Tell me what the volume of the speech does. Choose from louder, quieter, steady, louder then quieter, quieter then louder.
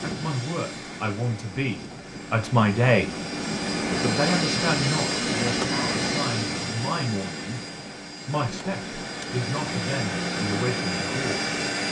louder then quieter.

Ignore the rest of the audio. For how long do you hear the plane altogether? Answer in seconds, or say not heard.
12 s.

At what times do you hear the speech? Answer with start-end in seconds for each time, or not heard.
0.0-3.2, 3.9-7.6, 8.2-11.4.